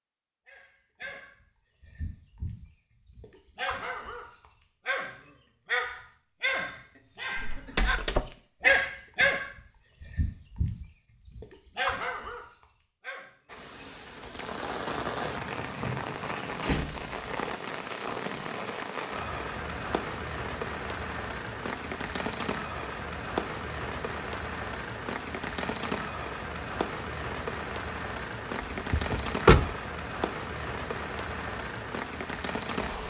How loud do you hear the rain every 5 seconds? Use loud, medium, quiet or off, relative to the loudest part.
off, off, loud, loud, loud, loud, loud.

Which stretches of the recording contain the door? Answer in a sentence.
You can hear the door from 7.4 to 8.2 s, from 16.5 to 17.1 s and from 28.9 to 29.7 s.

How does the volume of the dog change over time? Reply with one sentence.
The volume of the dog goes up, then down.